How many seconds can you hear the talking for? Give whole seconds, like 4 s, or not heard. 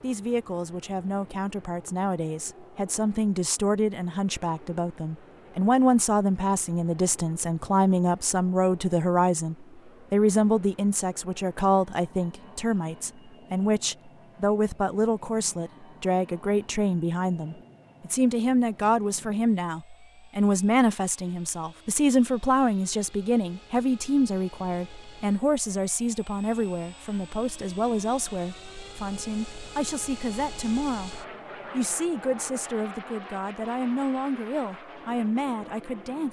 36 s.